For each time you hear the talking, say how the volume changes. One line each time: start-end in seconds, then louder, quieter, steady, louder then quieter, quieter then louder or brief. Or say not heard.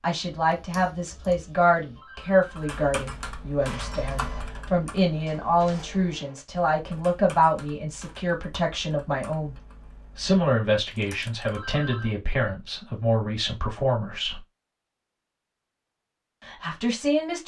0.0-9.6 steady
10.2-14.4 steady
16.4-17.4 brief.